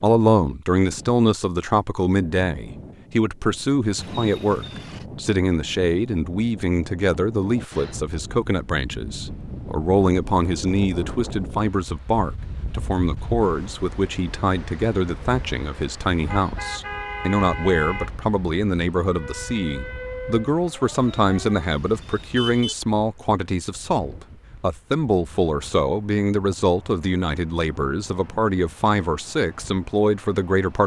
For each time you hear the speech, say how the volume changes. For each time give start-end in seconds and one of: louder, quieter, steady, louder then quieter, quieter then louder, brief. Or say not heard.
0.0-30.8 steady.